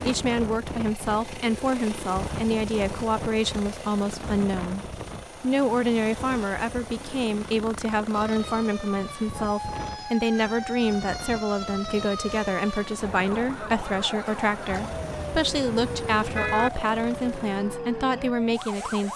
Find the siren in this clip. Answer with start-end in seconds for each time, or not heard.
8.1-19.1.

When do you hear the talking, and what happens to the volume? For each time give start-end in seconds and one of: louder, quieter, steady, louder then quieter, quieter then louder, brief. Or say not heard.
0.0-19.1 steady.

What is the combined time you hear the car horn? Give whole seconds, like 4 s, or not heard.
2 s.